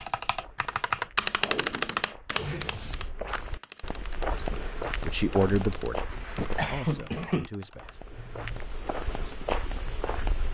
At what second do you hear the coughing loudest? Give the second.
7 s.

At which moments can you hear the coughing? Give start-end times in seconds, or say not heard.
2.4-3.1, 6.3-7.5.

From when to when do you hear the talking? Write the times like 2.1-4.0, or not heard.
4.3-8.0.